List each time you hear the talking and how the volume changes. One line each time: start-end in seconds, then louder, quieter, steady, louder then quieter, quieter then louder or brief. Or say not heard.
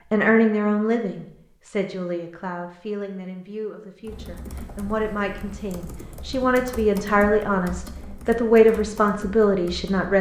0.1-10.1 quieter then louder.